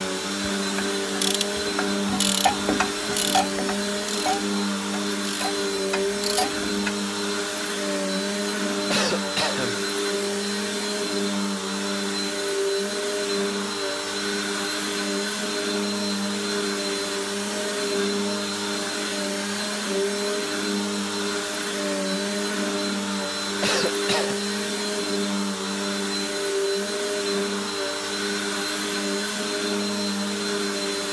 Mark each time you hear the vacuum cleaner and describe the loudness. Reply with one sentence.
The vacuum cleaner can be heard from 0.0 to 31.0 s, at a steady volume.